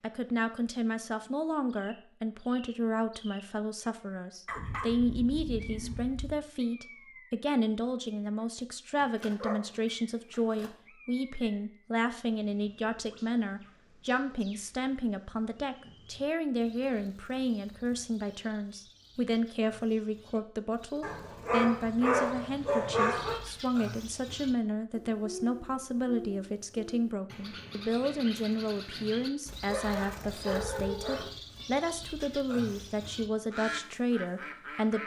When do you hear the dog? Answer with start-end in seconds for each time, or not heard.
4.5-6.3, 8.9-10.7, 21.0-23.4, 29.6-31.4.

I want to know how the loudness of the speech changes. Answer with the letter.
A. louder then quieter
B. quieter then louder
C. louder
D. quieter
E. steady
E.